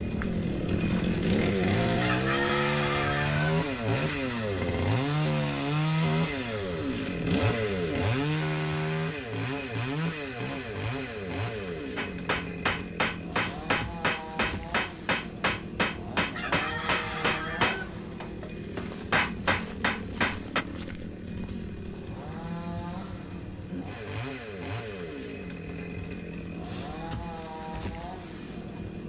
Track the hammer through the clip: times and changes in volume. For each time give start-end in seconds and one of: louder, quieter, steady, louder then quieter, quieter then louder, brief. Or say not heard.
11.9-20.6 steady.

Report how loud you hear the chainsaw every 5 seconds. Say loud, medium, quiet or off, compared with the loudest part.
loud, loud, medium, medium, medium, medium.